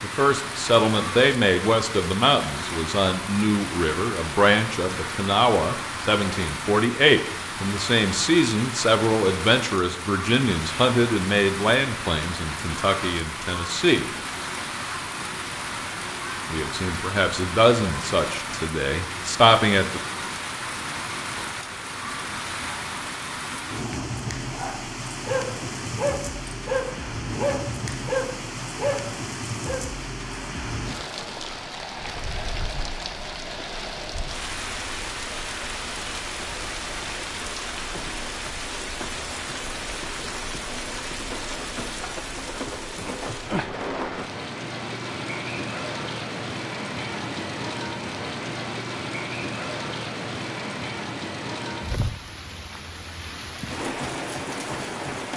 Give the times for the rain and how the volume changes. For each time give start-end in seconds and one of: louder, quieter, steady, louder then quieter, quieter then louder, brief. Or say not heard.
0.0-55.3 steady.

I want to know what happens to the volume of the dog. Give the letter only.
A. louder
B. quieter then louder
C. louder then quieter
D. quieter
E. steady
E.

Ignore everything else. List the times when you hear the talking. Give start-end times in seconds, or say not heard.
0.0-14.1, 16.5-20.0.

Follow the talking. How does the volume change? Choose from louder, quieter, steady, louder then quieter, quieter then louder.
steady.